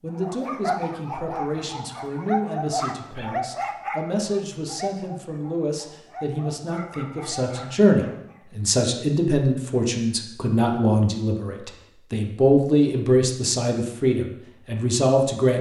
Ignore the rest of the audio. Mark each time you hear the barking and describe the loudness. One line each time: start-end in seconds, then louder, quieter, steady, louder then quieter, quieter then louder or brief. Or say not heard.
0.2-8.4 quieter.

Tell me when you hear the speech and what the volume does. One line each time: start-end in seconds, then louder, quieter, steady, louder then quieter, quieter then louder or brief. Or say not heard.
0.0-15.5 louder.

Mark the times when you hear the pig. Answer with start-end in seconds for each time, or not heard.
not heard.